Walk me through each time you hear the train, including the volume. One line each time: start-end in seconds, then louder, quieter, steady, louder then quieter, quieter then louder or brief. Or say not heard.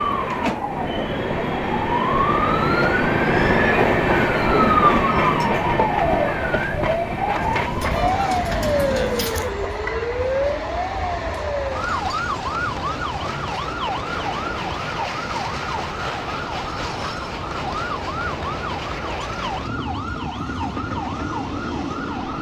0.0-22.3 quieter.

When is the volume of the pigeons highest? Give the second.
9 s.